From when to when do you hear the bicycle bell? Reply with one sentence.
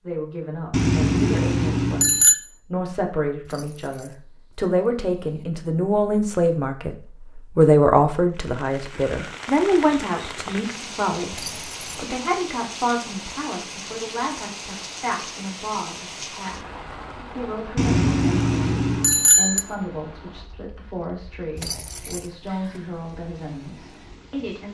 You can hear the bicycle bell from 0.7 to 2.4 s and from 17.8 to 19.6 s.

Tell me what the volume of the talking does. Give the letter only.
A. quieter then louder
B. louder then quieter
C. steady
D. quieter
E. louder
B.